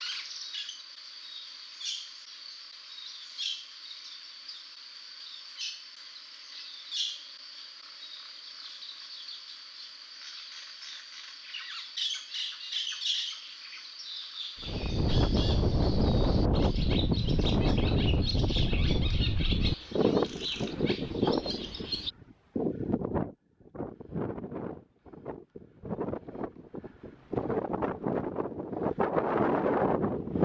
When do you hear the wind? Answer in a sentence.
You can hear the wind from 14.6 to 30.4 s.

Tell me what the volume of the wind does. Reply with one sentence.
The volume of the wind goes down, then up.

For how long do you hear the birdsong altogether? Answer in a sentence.
The birdsong can be heard for 22 seconds in total.